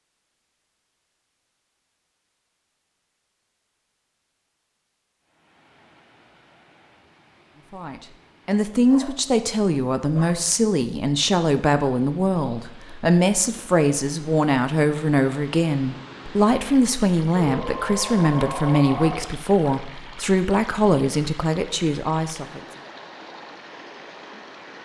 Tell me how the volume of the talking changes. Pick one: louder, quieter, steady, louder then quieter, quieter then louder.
steady.